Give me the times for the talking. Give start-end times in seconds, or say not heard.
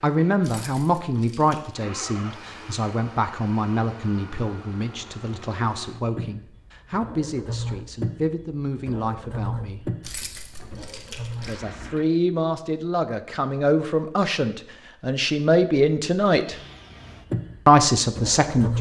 0.0-9.9, 11.4-16.6, 17.6-18.7.